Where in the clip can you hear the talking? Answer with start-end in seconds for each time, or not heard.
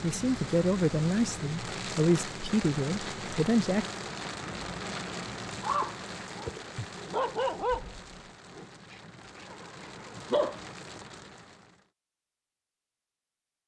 0.0-3.9.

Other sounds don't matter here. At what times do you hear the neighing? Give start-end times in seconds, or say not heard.
9.4-10.3.